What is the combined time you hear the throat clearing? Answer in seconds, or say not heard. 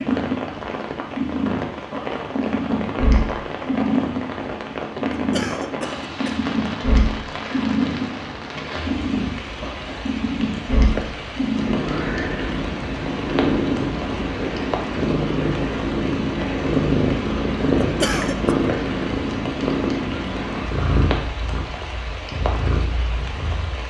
2 s.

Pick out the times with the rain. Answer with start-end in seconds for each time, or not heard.
0.0-23.8.